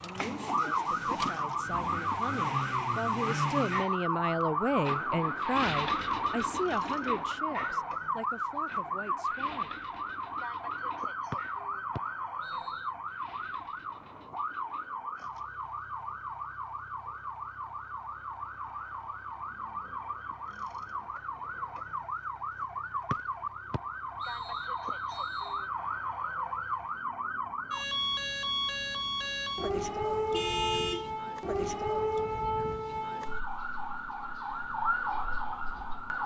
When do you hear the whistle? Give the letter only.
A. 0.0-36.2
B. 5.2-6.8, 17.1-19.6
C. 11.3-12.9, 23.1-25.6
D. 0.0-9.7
C.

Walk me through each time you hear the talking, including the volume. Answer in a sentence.
You can hear the talking from 0.0 to 9.7 s, getting louder then quieter.